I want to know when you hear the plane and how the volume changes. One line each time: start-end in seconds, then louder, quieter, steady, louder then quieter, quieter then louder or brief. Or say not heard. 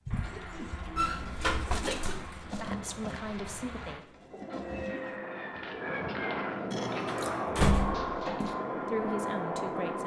0.0-10.0 louder.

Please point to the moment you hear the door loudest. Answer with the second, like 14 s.
8 s.